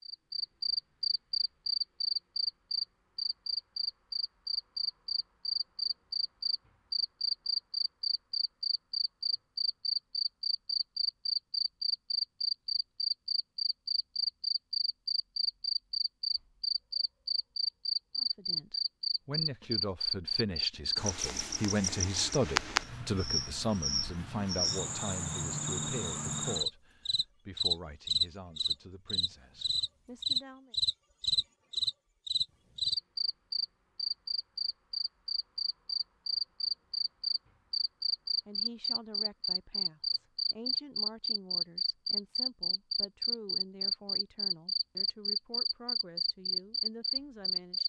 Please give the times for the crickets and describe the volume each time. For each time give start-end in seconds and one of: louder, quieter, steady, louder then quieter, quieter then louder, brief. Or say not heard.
0.0-47.8 steady.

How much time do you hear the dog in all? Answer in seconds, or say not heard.
not heard.